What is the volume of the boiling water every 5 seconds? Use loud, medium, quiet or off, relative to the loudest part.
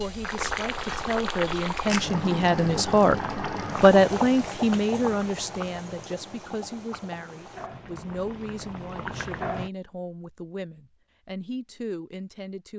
loud, medium, off.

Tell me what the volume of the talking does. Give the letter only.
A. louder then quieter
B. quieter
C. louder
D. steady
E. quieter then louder
A.